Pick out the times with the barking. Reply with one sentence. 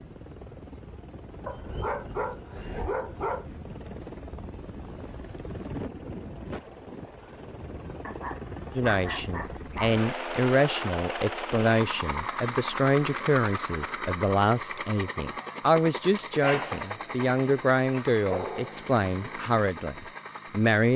You can hear the barking from 1.4 to 3.5 s, from 8.1 to 9.9 s and from 16.4 to 18.9 s.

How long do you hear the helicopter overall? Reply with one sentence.
You can hear the helicopter for 21 seconds altogether.